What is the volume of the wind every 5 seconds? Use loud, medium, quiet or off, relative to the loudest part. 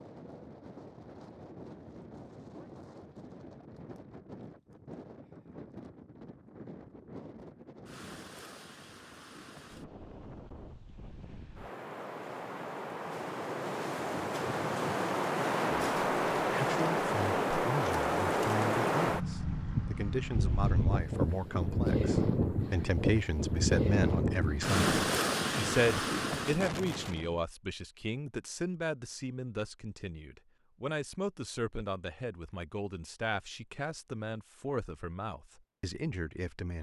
quiet, quiet, medium, loud, loud, loud, off, off.